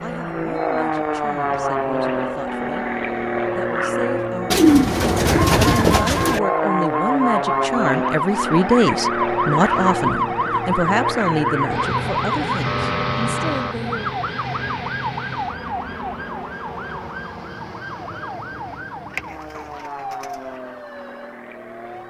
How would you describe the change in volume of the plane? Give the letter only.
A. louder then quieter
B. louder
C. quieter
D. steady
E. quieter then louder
C.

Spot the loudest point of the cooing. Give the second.
5 s.